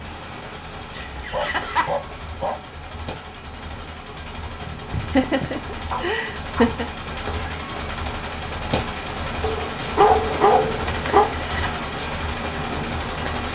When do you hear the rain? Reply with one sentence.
You can hear the rain from 0.0 to 13.4 s.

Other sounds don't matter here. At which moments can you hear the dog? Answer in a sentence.
You can hear the dog from 1.1 to 2.5 s, from 5.9 to 6.8 s and from 9.4 to 11.2 s.